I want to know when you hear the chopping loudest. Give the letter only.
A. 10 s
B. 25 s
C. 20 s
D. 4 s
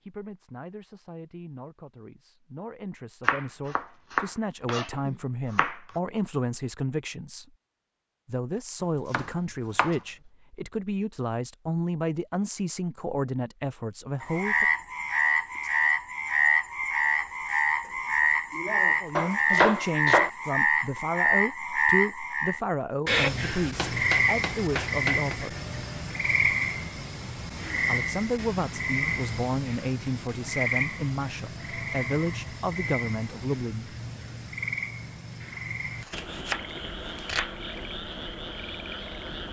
C.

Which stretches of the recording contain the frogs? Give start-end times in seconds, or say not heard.
14.2-39.4.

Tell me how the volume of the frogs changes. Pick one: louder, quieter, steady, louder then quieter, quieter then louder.
quieter.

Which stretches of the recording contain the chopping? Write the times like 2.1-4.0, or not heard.
3.2-5.8, 9.1-9.9, 19.1-20.3, 23.8-25.4, 35.5-37.5.